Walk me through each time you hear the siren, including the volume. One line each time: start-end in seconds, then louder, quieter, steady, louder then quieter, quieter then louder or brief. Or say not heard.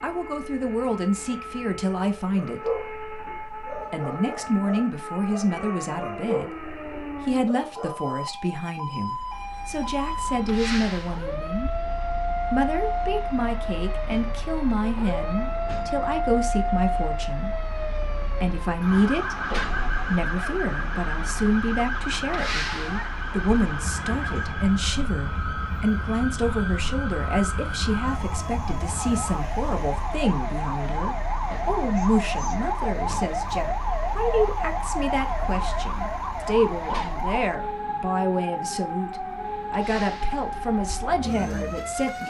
0.0-42.2 louder.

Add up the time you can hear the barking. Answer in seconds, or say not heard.
6 s.